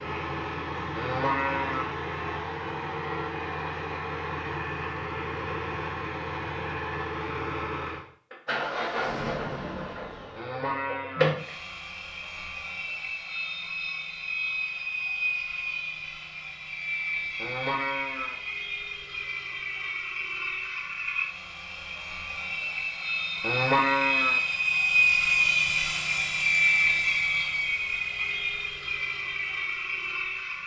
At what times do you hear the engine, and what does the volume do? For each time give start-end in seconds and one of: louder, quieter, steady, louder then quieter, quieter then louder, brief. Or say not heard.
0.0-30.6 louder.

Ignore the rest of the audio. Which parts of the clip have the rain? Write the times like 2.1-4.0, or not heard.
not heard.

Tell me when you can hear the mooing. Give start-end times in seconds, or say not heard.
0.9-1.9, 10.3-11.3, 17.4-18.4, 23.4-24.4.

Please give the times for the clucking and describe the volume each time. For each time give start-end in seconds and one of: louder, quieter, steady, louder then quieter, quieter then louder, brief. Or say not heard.
not heard.